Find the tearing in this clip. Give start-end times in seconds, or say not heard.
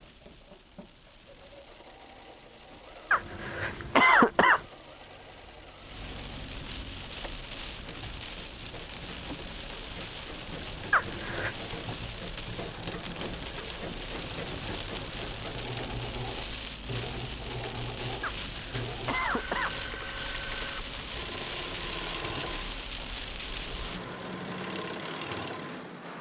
not heard.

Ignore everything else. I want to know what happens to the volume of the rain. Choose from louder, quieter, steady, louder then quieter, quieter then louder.
louder.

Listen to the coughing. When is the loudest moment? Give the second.
4 s.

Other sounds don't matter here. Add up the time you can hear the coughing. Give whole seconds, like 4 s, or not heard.
4 s.